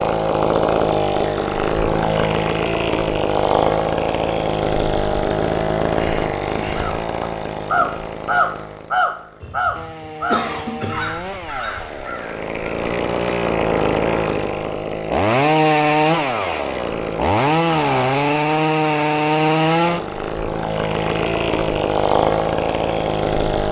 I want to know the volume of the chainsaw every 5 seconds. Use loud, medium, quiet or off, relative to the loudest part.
loud, medium, medium, loud, loud.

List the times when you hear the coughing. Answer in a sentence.
You can hear the coughing from 9.4 to 11.2 s.